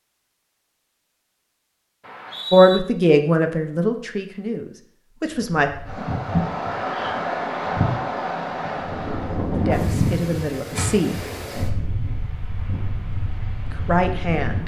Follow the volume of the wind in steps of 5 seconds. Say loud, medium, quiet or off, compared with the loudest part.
off, loud, medium.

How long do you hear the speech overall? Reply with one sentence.
You can hear the speech for 6 seconds altogether.